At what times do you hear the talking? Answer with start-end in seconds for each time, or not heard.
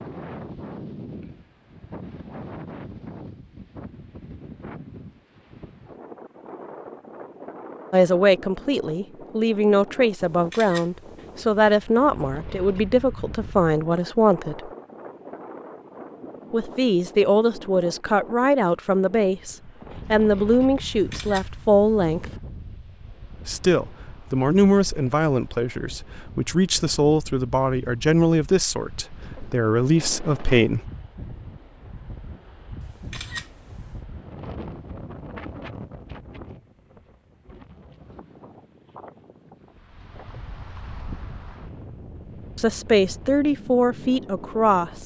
7.9-14.7, 16.5-22.2, 23.4-30.9, 42.5-45.0.